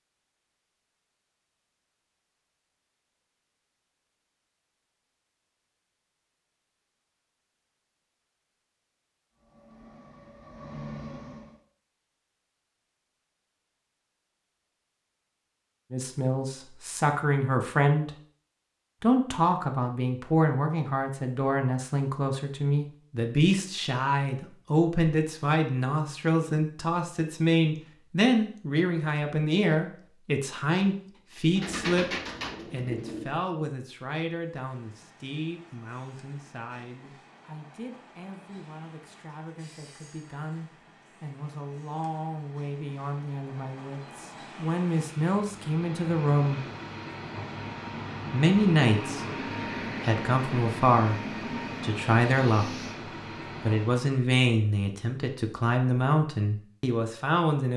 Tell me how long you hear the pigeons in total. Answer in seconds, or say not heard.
2 s.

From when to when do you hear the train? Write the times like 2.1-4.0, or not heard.
9.3-11.6, 34.5-54.1.